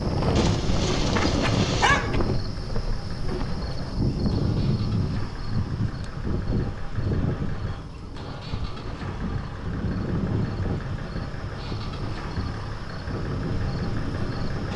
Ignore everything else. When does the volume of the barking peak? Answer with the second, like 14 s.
2 s.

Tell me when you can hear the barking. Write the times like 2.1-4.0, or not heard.
0.3-2.1.